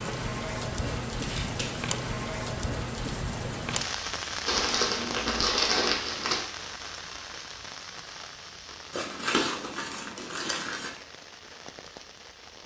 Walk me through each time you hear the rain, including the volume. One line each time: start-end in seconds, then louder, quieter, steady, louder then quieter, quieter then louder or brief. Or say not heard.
0.0-12.6 quieter.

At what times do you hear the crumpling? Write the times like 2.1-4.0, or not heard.
1.0-1.9, 4.5-6.5, 8.9-10.9.